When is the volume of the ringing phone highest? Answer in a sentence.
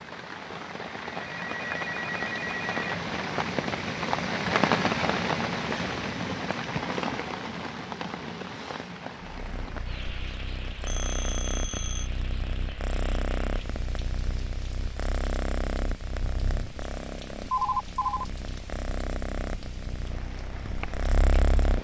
The volume of the ringing phone peaks at 18 seconds.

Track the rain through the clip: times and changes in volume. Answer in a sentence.
The rain can be heard from 0.0 to 21.7 s, getting quieter.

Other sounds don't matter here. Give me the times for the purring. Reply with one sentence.
The purring can be heard from 9.2 to 21.7 s.